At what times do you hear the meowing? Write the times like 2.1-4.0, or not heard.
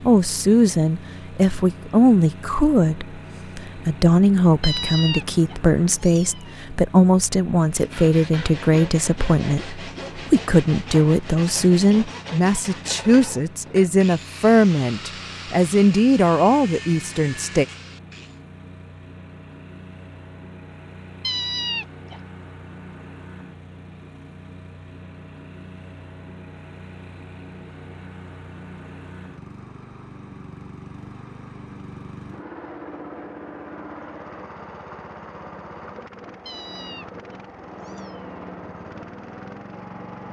4.6-6.5, 21.2-22.2, 36.5-38.2.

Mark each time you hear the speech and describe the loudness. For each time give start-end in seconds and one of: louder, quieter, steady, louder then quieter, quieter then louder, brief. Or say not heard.
0.0-17.6 steady.